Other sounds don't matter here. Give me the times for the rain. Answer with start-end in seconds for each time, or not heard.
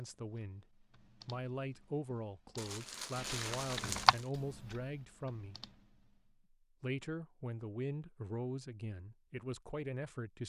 not heard.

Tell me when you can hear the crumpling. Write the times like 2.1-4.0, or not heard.
2.5-4.3.